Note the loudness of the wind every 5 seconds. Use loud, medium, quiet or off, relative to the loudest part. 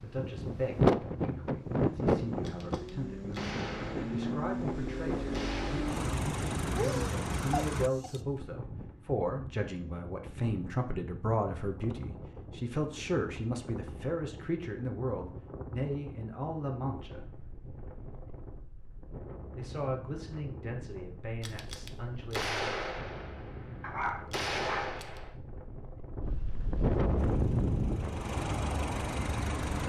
loud, quiet, quiet, quiet, quiet, loud.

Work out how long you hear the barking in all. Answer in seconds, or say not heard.
3 s.